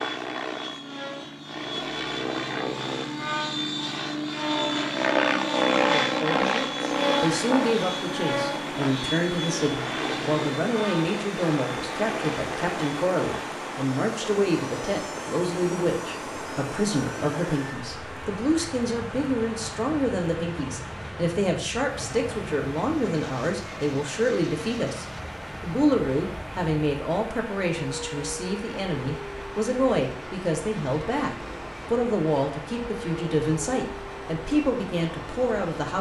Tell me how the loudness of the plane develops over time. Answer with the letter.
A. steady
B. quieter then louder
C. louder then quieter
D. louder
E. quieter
E.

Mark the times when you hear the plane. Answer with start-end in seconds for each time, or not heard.
0.0-35.9.